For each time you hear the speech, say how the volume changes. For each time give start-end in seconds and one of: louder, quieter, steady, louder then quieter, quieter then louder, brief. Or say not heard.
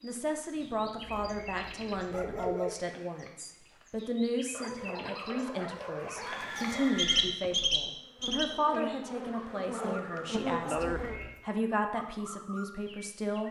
0.0-13.4 steady.